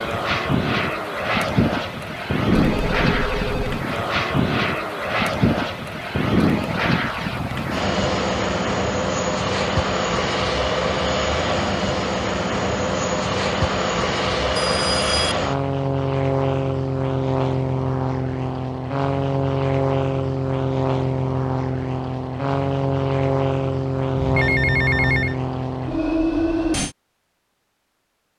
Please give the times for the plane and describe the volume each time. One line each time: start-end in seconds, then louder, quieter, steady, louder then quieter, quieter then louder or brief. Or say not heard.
0.0-26.9 steady.